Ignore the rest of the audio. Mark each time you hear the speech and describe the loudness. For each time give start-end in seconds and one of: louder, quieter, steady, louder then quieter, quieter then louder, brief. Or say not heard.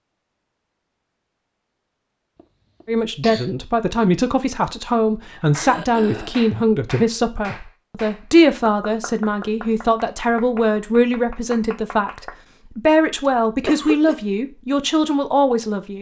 2.9-15.9 steady.